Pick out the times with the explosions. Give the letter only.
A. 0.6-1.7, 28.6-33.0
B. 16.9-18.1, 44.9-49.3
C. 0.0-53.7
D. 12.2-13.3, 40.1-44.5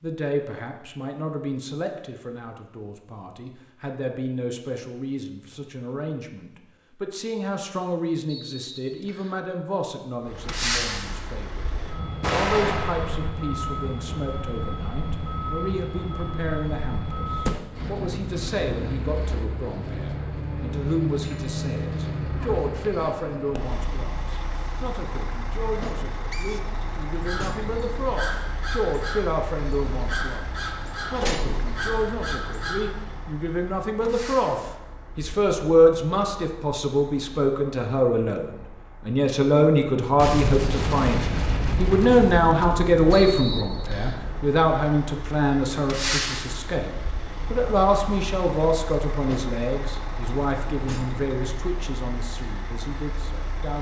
D.